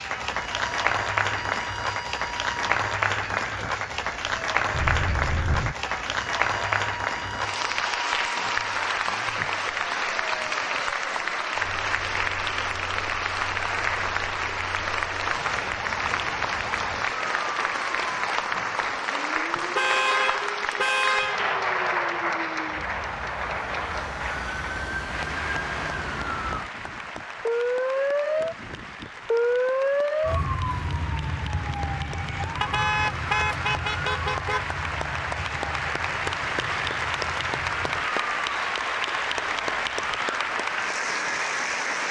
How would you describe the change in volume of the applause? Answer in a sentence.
The loudness of the applause goes down, then up.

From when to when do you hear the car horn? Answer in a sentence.
The car horn can be heard from 4.7 to 5.8 s, from 19.8 to 21.5 s and from 32.6 to 34.6 s.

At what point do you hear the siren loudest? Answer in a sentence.
The loudest moment of the siren is at 30 seconds.